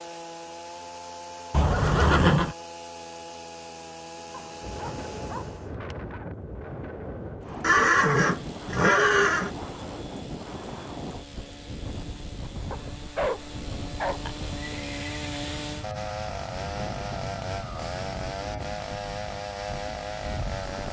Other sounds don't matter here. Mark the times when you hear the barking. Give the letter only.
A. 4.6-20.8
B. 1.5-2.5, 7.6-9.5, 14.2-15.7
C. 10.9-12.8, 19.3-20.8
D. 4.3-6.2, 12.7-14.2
D.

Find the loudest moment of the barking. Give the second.
13 s.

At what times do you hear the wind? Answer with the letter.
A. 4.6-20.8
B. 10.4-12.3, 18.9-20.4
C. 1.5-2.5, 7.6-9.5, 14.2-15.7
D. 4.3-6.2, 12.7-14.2
A.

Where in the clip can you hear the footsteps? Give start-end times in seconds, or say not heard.
not heard.